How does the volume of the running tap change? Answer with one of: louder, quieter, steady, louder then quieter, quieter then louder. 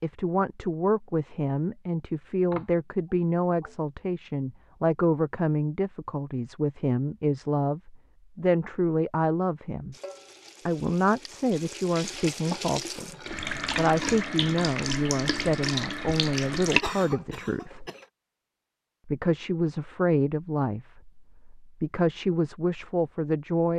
louder.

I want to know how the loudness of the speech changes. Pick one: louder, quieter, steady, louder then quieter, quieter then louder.
steady.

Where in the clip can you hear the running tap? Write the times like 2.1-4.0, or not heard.
9.9-16.9.